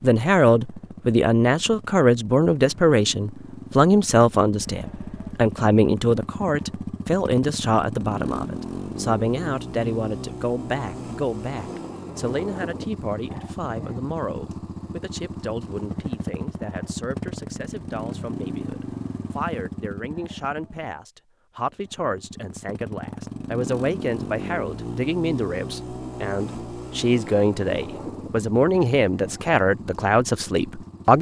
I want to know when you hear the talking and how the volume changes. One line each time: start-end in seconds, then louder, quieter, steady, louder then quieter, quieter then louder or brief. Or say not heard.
0.0-31.1 quieter then louder.